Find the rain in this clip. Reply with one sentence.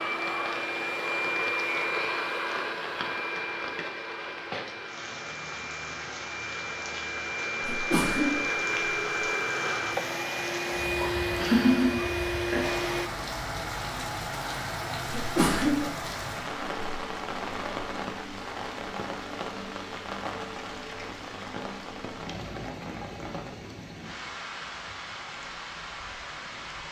The rain can be heard from 0.0 to 26.8 s.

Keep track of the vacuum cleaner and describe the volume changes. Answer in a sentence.
The volume of the vacuum cleaner goes down, then up.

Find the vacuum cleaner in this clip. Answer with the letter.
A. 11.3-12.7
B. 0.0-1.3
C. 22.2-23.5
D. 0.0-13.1
D.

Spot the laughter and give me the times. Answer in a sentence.
You can hear the laughter from 11.3 to 12.7 s.